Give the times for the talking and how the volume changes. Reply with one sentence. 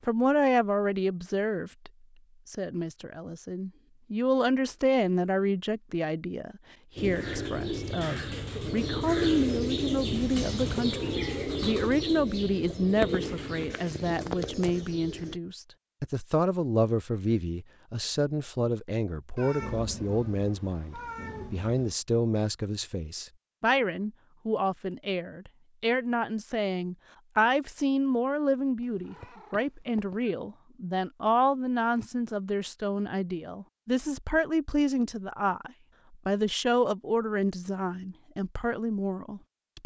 You can hear the talking from 0.1 to 39.8 s, at a steady volume.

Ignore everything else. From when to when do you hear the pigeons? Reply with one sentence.
You can hear the pigeons from 7.0 to 15.4 s.